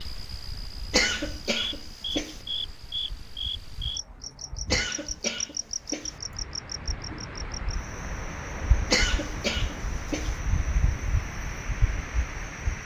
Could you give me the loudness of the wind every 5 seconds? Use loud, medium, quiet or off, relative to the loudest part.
quiet, loud, loud.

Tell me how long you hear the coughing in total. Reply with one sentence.
The coughing can be heard for 4 seconds in total.